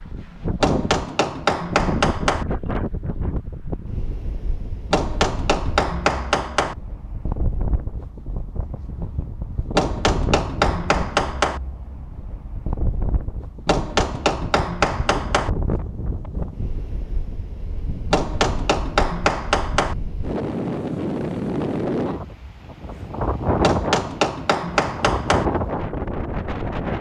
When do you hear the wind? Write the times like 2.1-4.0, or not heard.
0.0-26.9.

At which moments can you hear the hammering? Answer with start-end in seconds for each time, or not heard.
0.6-2.5, 4.9-6.8, 9.8-11.6, 13.7-15.5, 18.1-19.9, 23.6-25.4.